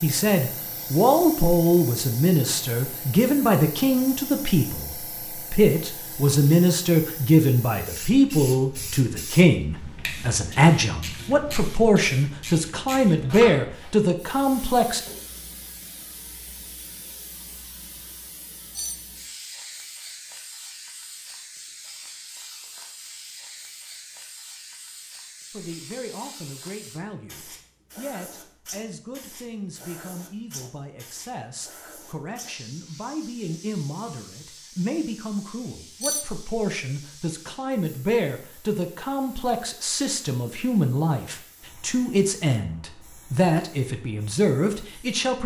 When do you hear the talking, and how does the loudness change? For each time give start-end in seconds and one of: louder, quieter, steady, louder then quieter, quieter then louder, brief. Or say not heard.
0.0-15.0 steady
25.5-45.4 louder.